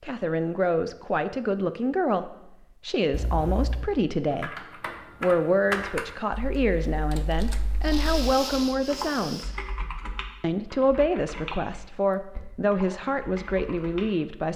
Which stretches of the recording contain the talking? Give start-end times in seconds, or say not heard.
0.0-4.5, 5.2-9.6, 10.4-14.5.